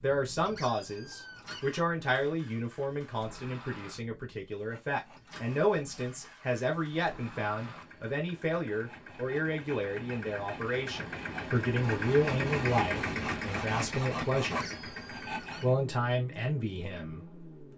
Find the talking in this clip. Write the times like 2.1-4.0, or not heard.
0.0-14.7, 15.6-17.4.